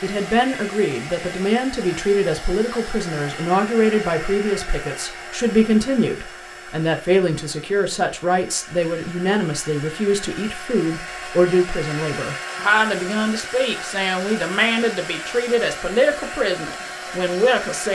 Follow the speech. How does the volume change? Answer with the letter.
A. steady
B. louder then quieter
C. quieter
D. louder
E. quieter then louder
A.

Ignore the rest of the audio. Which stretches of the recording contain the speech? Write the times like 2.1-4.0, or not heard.
0.0-17.8.